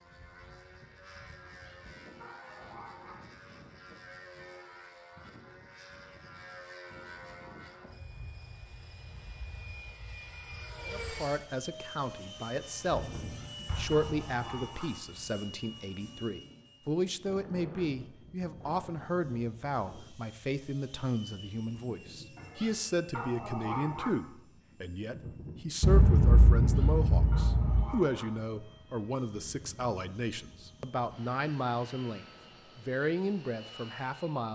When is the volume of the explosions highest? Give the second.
26 s.